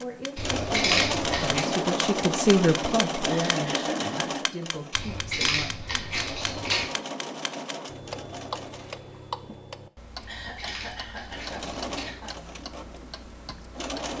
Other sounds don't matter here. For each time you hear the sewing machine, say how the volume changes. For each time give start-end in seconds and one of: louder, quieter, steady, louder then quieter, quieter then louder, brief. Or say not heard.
0.0-9.1 quieter
11.2-14.1 brief.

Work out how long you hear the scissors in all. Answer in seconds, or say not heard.
5 s.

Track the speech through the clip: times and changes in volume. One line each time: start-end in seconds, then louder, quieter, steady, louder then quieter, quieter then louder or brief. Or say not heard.
0.0-6.1 louder then quieter.